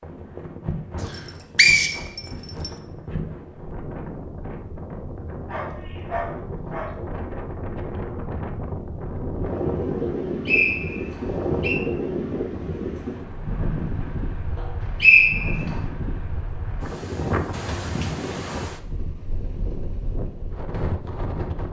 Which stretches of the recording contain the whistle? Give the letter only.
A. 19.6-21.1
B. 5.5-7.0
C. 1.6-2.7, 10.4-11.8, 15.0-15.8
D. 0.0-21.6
C.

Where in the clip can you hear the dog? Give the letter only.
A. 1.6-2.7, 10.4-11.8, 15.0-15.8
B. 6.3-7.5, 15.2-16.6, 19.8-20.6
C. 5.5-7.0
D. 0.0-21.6
C.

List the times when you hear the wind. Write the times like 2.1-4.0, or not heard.
0.0-21.6.